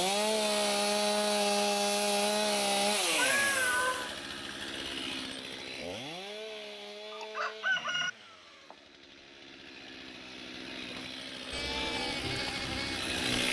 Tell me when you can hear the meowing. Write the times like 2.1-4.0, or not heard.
3.1-4.1.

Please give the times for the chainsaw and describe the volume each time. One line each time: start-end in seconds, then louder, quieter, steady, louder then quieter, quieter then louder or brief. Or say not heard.
0.0-13.4 quieter then louder.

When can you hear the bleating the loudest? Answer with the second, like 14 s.
12 s.